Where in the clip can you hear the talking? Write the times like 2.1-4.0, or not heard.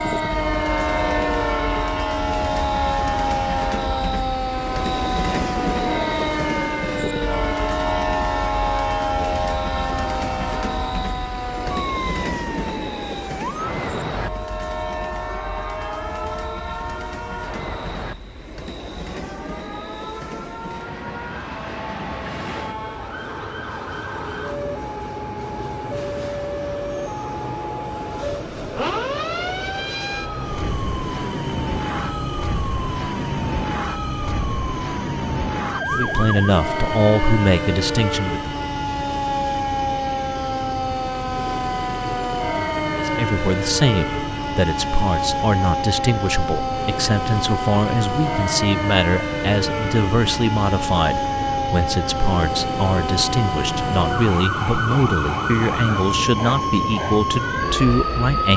35.9-38.4, 42.9-58.5.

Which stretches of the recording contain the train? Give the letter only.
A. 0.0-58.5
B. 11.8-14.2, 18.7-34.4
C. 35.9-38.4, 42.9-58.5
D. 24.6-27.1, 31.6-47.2
A.